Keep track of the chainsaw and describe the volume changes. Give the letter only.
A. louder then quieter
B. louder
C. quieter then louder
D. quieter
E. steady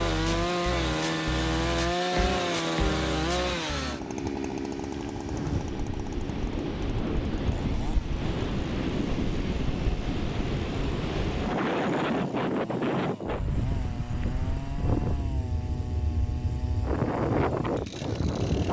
D.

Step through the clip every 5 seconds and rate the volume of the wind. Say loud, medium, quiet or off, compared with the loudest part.
quiet, loud, loud, loud.